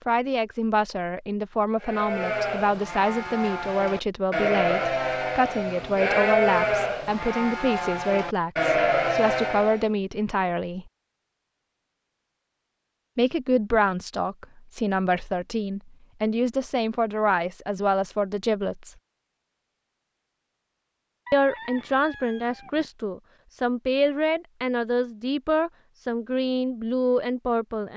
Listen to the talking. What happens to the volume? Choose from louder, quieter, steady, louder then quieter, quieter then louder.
steady.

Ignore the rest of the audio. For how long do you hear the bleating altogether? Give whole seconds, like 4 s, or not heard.
8 s.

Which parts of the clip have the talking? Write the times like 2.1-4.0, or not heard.
0.1-10.9, 13.2-18.9, 21.3-27.9.